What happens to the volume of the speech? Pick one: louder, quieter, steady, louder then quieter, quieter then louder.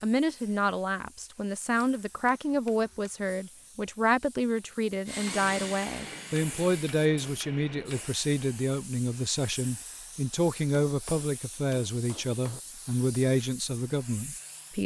steady.